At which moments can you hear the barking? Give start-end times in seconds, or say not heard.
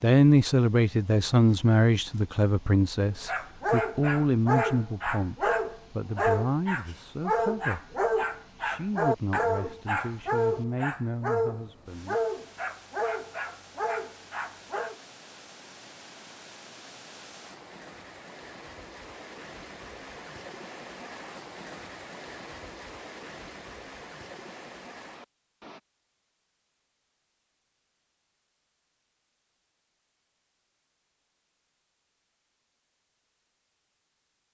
3.2-15.0.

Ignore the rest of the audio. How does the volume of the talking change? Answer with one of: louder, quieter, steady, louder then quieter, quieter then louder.
quieter.